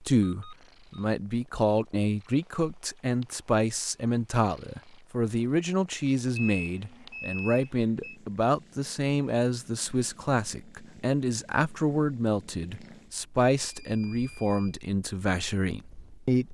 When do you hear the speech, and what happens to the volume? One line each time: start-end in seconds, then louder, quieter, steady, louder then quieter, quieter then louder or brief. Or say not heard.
0.0-16.5 steady.